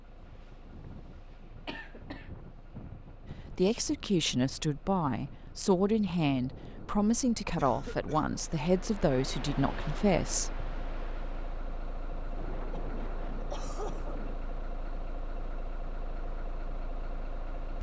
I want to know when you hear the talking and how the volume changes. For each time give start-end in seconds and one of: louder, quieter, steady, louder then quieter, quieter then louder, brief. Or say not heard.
3.2-10.6 steady.